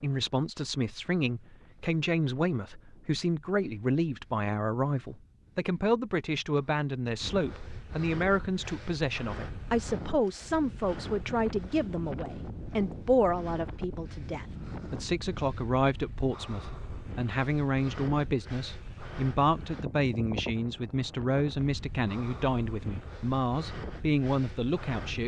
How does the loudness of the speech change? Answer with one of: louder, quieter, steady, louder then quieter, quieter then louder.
steady.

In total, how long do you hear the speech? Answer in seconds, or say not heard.
25 s.